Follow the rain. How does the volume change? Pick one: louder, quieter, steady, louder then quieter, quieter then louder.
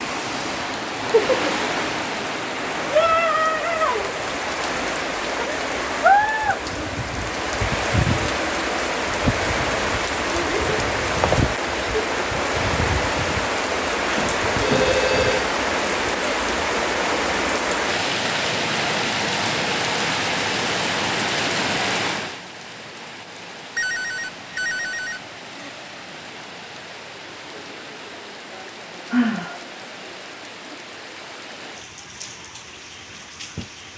quieter.